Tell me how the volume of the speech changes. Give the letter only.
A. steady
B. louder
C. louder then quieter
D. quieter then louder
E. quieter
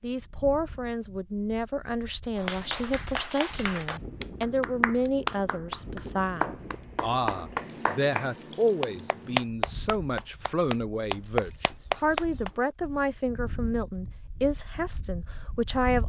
A.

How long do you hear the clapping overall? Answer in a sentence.
The clapping can be heard for 10 seconds in total.